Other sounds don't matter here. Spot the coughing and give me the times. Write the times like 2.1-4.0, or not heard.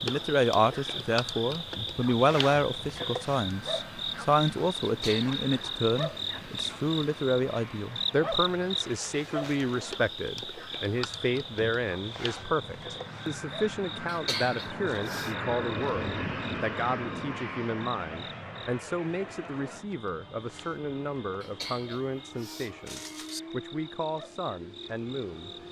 4.8-5.3, 14.1-15.3, 21.4-23.4.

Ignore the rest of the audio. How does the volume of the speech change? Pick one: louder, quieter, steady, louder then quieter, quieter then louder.
quieter.